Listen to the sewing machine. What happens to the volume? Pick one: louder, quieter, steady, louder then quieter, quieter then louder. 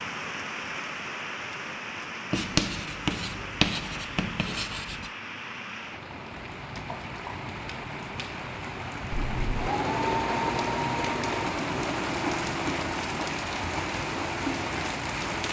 quieter.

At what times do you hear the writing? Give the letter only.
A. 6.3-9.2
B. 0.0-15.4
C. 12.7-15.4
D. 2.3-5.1
D.